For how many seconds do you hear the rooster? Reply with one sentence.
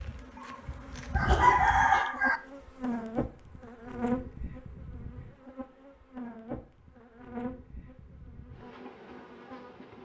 The rooster can be heard for 2 seconds in total.